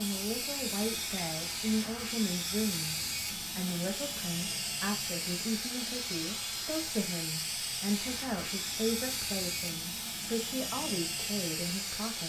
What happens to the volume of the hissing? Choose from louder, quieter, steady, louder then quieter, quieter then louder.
steady.